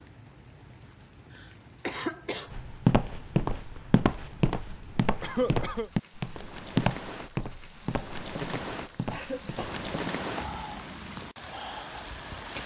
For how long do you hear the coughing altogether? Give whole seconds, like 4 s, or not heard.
3 s.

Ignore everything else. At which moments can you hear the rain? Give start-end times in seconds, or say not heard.
0.0-12.6.